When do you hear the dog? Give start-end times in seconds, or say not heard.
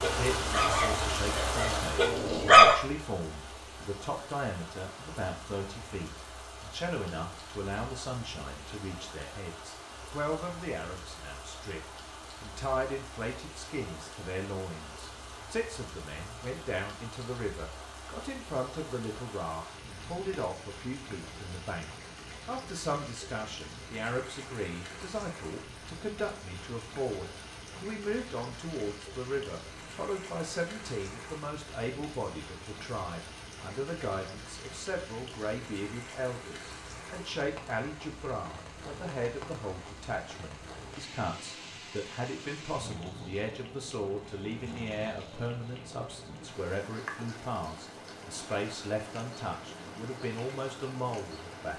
0.0-2.8.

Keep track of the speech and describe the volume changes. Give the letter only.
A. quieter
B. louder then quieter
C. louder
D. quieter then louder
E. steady
E.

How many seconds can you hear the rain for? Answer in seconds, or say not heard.
52 s.